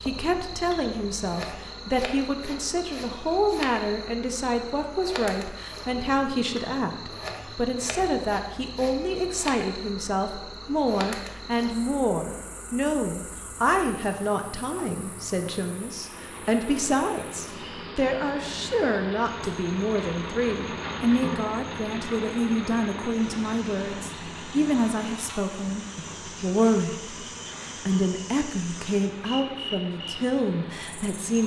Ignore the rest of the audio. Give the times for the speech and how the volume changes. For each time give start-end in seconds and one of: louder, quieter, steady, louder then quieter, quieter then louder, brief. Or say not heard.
0.0-31.4 steady.